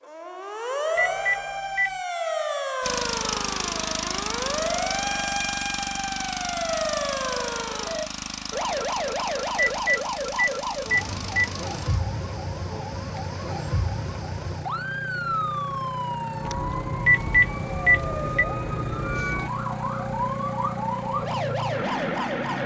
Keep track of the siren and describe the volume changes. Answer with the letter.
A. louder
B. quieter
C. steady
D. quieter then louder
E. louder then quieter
C.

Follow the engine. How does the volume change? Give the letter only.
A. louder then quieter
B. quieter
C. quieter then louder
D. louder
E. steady
C.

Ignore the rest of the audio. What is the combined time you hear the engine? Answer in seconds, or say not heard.
20 s.